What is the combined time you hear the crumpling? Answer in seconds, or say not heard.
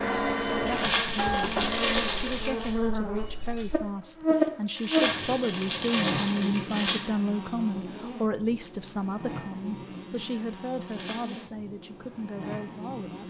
5 s.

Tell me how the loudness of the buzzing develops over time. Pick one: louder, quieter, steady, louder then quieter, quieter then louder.
louder then quieter.